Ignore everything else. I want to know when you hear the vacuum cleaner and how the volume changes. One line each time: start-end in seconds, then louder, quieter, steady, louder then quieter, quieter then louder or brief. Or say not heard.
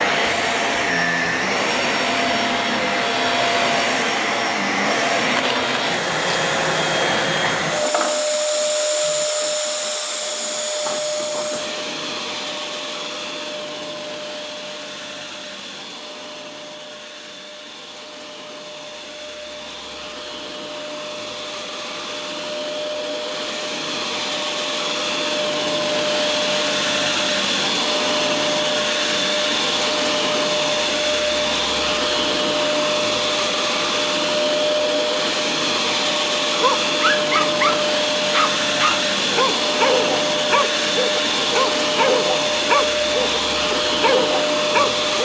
0.0-45.1 quieter then louder.